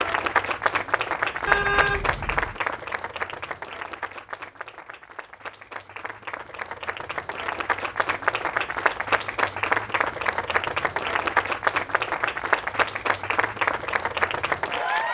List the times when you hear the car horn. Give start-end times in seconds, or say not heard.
1.4-2.6.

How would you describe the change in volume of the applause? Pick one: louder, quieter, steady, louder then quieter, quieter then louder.
quieter then louder.